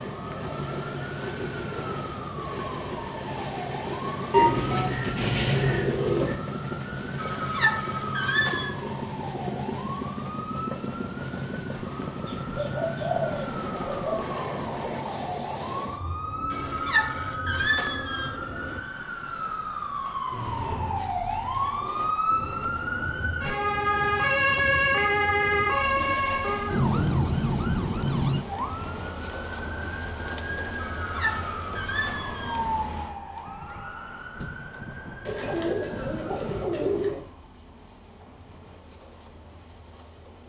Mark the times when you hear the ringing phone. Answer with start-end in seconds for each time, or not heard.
7.2-8.8, 16.5-18.4, 30.8-32.6.